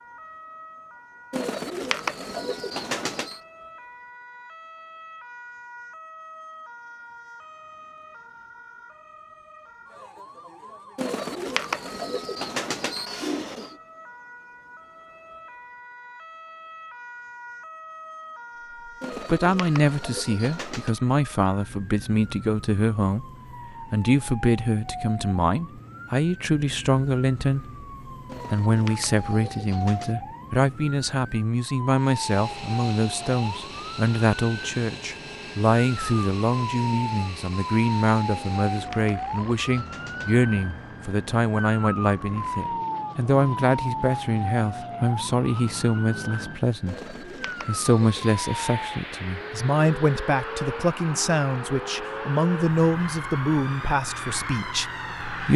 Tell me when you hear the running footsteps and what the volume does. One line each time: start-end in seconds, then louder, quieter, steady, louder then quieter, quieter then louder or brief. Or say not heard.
not heard.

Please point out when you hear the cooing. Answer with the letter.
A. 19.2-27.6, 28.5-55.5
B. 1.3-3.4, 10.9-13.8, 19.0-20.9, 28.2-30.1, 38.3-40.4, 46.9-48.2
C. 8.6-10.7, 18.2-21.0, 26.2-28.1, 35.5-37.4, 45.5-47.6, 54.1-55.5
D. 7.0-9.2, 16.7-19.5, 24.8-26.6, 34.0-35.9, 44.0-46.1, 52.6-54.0
B.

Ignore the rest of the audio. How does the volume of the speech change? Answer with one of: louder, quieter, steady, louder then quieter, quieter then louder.
steady.